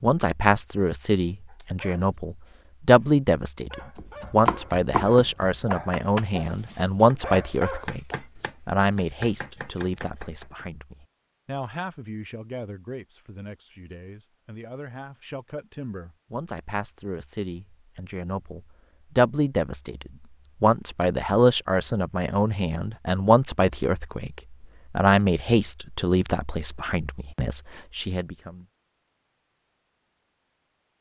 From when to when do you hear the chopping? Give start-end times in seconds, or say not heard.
4.0-10.7.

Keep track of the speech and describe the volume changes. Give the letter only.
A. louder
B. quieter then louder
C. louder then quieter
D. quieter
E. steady
B.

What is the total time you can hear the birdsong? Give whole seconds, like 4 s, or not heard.
not heard.